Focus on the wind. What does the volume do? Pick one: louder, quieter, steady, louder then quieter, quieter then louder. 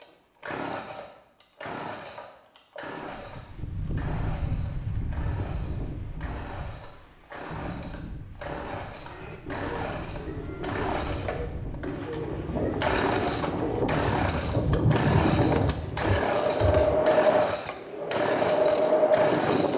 quieter then louder.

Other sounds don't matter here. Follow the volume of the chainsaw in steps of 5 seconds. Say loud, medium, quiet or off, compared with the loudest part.
medium, medium, loud, loud.